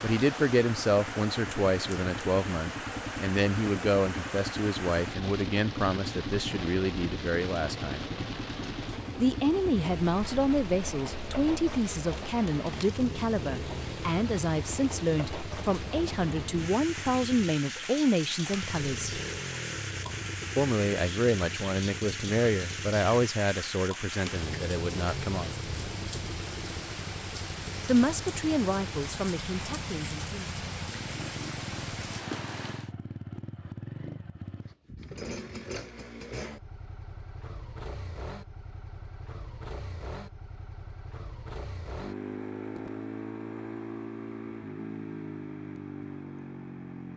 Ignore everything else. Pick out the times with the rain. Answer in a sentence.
The rain can be heard from 0.0 to 32.9 s.